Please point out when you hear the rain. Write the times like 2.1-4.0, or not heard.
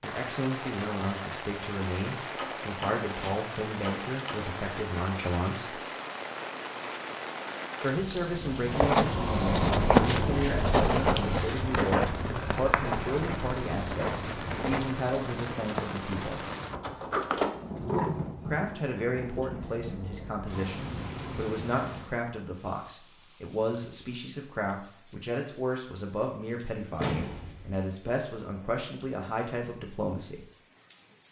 0.0-31.2.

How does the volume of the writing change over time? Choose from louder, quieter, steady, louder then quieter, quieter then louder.
quieter.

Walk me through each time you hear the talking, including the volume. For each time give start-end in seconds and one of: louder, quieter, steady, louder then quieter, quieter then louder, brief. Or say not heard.
0.0-5.8 steady
7.8-16.4 steady
18.4-30.5 steady.